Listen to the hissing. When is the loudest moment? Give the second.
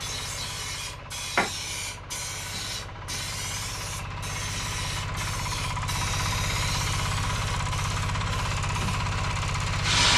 10 s.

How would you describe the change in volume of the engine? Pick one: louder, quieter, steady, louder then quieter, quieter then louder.
louder.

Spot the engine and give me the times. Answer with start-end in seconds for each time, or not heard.
0.0-10.1.